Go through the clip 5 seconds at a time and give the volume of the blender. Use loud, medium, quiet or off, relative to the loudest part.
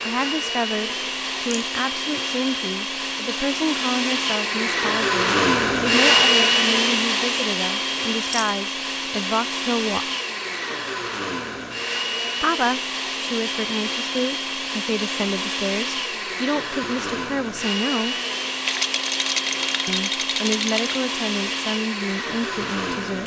medium, loud, medium, medium, medium.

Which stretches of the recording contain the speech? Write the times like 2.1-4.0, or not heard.
0.0-10.1, 12.4-18.2, 19.9-23.2.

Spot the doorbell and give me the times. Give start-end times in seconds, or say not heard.
not heard.